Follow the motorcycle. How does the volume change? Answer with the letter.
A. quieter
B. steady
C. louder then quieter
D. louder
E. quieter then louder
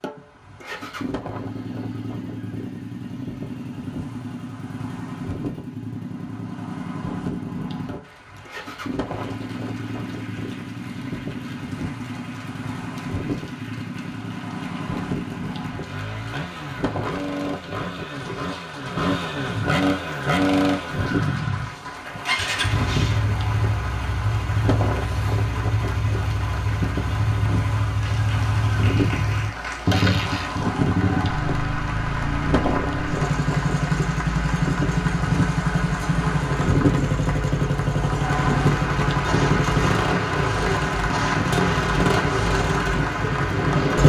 D.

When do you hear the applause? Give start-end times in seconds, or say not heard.
8.0-44.0.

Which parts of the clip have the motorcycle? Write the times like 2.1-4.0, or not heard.
0.0-44.0.